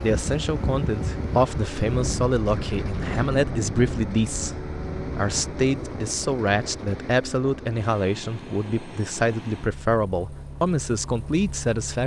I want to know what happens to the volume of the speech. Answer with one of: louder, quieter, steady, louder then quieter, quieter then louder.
steady.